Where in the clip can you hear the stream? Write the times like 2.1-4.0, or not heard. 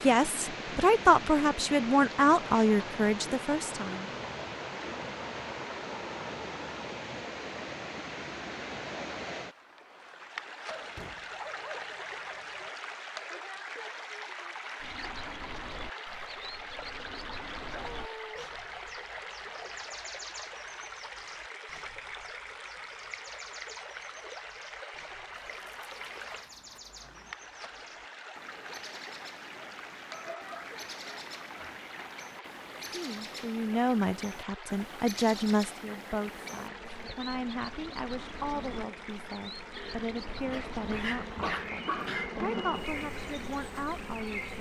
0.0-44.5.